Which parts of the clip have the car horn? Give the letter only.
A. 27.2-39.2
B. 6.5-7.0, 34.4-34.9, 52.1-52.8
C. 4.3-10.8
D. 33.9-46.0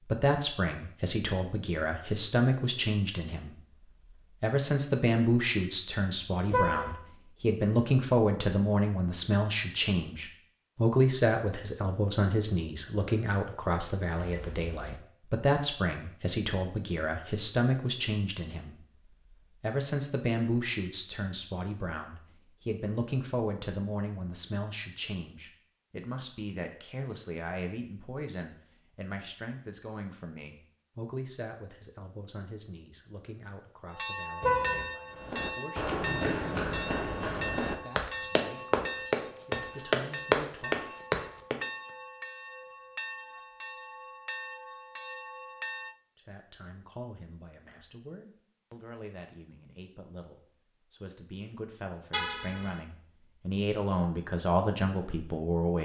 B.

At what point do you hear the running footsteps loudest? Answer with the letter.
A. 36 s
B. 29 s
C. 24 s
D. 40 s
D.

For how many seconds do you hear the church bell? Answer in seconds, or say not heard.
12 s.